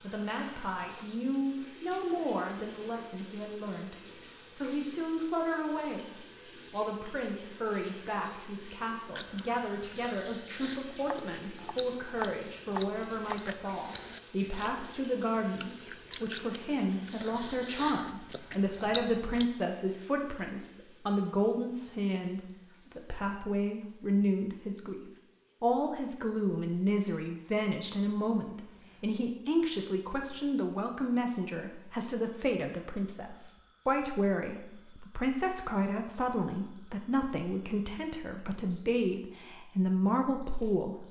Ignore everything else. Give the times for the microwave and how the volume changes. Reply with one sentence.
You can't hear the microwave here.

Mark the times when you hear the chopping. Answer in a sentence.
The chopping can be heard from 11.0 to 13.4 s.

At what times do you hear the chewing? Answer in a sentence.
The chewing can be heard from 9.2 to 19.4 s.